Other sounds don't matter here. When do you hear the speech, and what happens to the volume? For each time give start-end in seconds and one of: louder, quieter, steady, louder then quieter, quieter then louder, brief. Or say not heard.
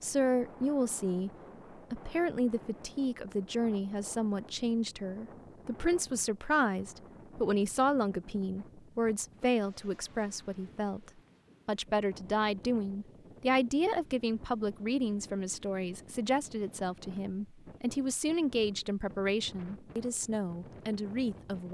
0.0-1.3 brief
1.9-21.6 steady.